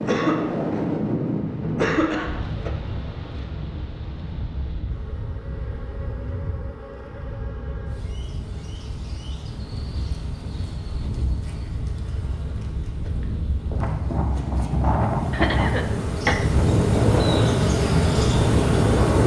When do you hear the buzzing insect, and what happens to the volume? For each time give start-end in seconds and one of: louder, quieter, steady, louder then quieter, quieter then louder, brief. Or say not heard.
4.8-19.2 louder.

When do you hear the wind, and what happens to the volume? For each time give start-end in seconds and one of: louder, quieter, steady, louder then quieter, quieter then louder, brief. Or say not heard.
0.0-19.2 quieter then louder.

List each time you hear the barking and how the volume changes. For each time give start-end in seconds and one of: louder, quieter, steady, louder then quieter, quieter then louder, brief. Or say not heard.
not heard.